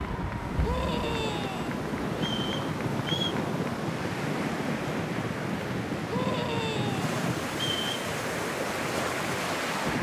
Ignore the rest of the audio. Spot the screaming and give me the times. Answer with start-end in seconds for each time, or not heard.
0.6-1.8, 6.0-7.0.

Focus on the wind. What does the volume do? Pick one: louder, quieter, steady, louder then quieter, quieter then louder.
steady.